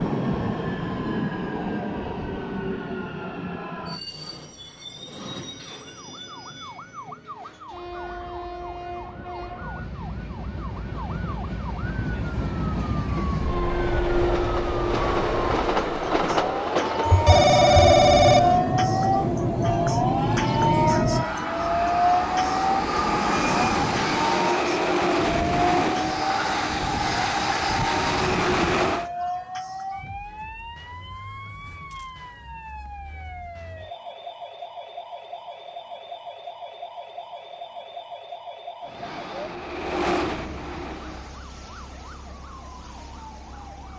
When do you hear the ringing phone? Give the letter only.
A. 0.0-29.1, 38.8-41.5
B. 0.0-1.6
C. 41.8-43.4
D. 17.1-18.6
D.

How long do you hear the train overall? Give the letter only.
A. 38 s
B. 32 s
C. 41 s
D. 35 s
B.